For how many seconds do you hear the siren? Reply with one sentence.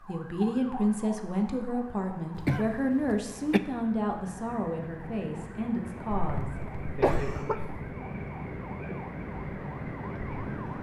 You can hear the siren for 11 seconds altogether.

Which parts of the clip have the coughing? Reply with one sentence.
You can hear the coughing from 2.4 to 3.6 s and from 6.2 to 7.9 s.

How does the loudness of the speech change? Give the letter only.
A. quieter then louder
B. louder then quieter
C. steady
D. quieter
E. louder
D.